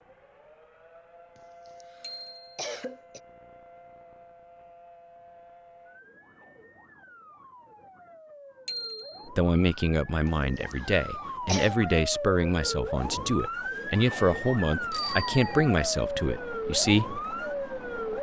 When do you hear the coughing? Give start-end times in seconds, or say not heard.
1.4-3.2, 10.2-11.8.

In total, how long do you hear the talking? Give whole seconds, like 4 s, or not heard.
8 s.